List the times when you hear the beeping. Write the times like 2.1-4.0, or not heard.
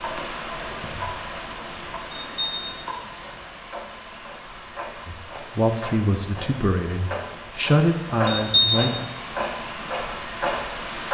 2.1-2.9, 8.2-8.9.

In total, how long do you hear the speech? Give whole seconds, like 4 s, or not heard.
4 s.